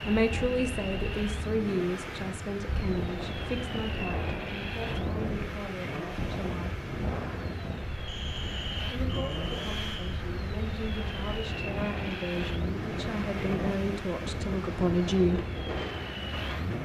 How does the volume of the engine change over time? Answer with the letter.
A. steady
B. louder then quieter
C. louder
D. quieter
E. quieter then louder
A.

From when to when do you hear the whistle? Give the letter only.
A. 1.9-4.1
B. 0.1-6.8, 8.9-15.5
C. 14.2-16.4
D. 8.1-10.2
D.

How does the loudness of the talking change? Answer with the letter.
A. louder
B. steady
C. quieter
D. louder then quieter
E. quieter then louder
E.